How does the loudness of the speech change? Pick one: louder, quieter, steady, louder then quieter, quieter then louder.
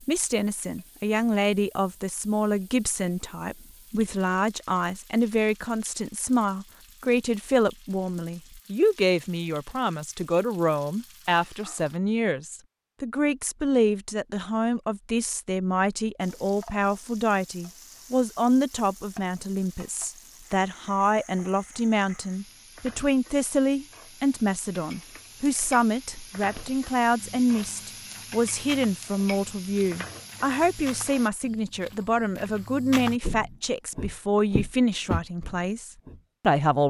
steady.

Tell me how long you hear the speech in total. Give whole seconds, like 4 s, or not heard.
37 s.